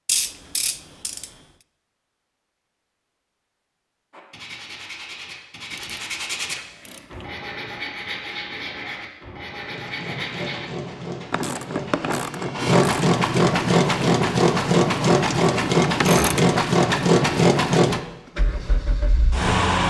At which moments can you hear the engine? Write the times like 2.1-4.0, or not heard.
9.7-19.8.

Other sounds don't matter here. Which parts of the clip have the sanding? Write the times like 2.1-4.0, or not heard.
4.1-10.7.